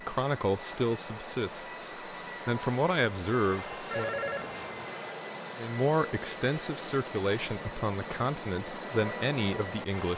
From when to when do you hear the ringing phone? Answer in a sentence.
The ringing phone can be heard from 3.9 to 5.0 s.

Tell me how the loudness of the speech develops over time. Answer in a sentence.
The loudness of the speech stays about the same.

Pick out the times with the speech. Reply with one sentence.
The speech can be heard from 0.0 to 4.2 s and from 5.5 to 10.1 s.